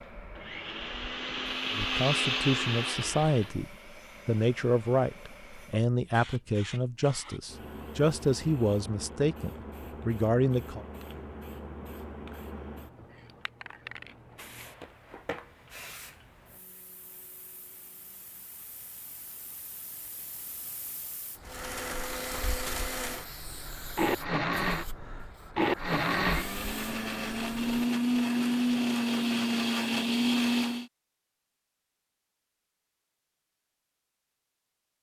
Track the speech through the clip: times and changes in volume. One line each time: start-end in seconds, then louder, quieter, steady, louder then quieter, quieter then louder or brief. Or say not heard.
1.8-10.8 steady.